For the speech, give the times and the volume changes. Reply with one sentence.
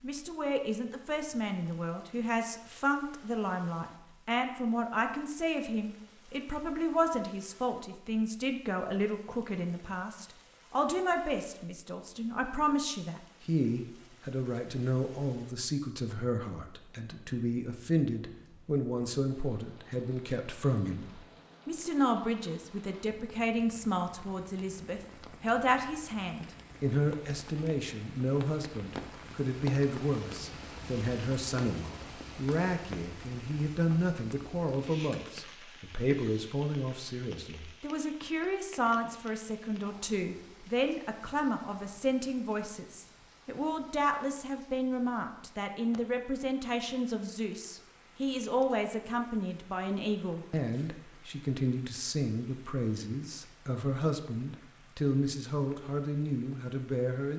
You can hear the speech from 0.0 to 57.3 s, at a steady volume.